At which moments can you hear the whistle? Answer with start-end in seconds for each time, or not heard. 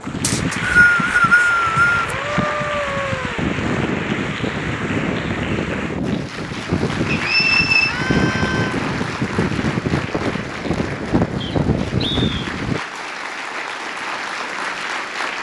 0.2-2.0, 7.0-8.0, 11.4-12.2.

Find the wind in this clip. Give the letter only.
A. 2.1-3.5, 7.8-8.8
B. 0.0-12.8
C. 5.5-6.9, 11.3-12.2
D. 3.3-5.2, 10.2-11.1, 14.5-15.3
B.